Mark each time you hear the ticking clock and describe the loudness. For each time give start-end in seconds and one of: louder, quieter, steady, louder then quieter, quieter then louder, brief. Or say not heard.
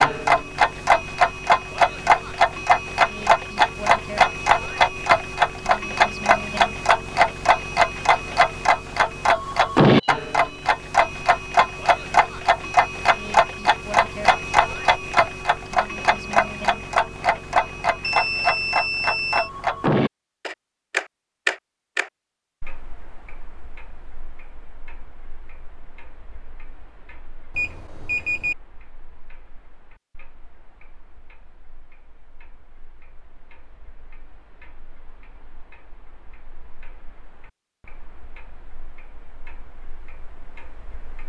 0.0-41.2 quieter.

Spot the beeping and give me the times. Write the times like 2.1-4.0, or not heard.
9.8-10.5, 18.0-19.5, 27.6-28.6.